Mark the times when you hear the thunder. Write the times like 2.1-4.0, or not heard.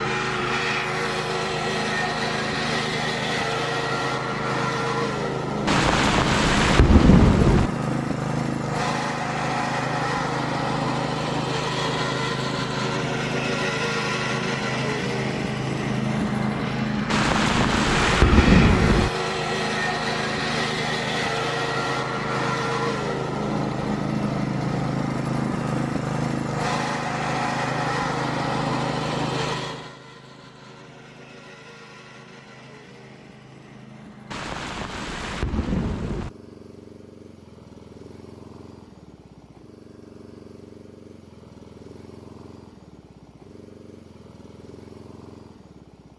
5.7-7.7, 17.1-19.1, 34.3-36.3.